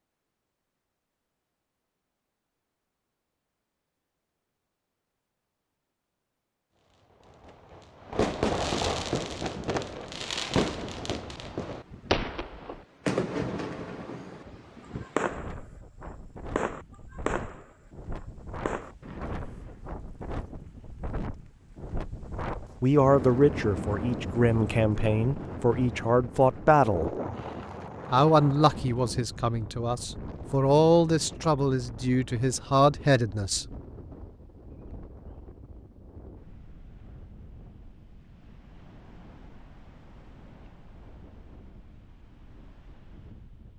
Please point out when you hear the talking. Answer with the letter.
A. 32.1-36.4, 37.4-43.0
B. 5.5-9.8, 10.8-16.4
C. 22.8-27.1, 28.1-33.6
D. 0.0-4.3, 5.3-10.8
C.